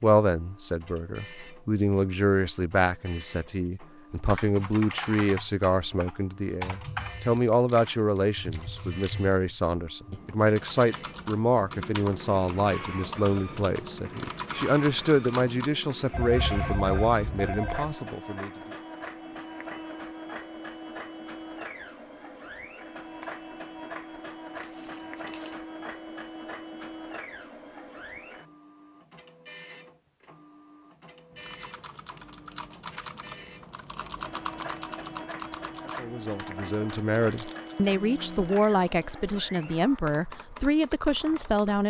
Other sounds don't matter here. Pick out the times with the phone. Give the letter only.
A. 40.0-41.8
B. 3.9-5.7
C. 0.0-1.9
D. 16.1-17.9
D.